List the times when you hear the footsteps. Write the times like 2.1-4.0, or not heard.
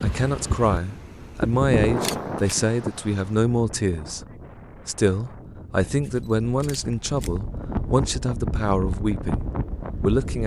not heard.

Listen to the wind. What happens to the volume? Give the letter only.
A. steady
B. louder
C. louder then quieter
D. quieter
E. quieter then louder
E.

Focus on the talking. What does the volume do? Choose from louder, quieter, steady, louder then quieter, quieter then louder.
steady.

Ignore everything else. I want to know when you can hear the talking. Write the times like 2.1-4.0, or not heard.
0.0-4.2, 4.8-10.4.